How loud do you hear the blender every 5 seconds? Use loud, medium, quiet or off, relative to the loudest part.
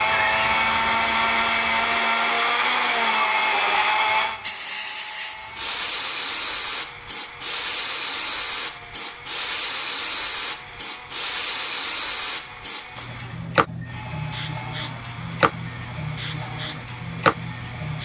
loud, quiet, quiet, quiet.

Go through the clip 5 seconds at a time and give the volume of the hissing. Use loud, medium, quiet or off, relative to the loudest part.
medium, loud, loud, loud.